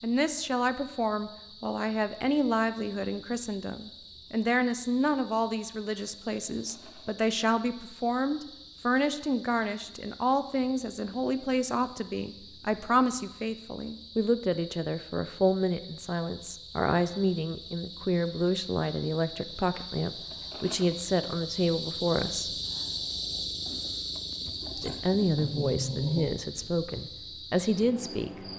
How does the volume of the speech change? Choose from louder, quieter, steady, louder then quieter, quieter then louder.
steady.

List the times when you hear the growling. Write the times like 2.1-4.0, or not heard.
24.8-26.4.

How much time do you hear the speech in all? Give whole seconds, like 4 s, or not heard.
26 s.